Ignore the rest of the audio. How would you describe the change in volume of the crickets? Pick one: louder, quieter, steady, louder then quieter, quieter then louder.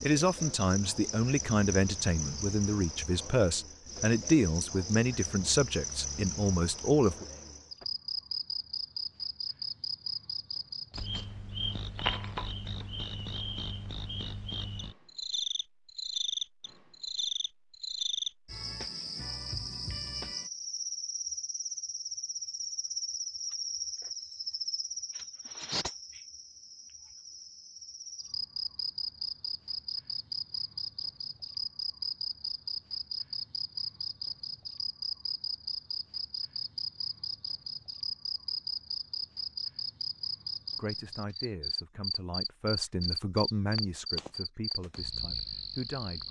steady.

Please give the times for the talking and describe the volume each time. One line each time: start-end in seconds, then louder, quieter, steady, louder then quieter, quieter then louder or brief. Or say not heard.
0.0-7.2 steady
40.8-46.2 louder then quieter.